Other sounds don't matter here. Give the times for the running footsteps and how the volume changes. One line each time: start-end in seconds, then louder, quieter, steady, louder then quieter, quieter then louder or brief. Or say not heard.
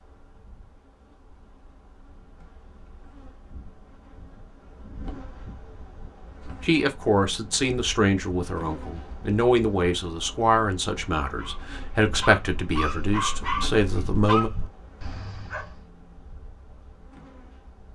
not heard.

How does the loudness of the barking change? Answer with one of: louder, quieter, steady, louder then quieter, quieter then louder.
louder then quieter.